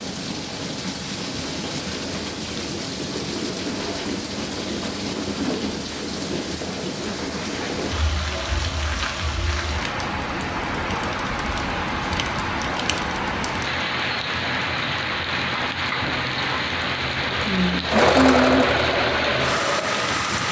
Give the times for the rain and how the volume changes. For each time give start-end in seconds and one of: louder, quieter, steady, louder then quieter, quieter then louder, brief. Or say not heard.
0.0-20.4 louder.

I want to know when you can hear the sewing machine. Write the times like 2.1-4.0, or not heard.
17.9-20.1.